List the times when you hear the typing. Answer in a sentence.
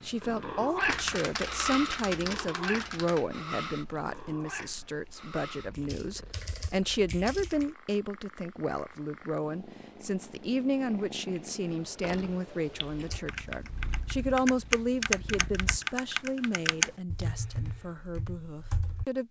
You can hear the typing from 0.8 to 7.7 s and from 12.8 to 19.1 s.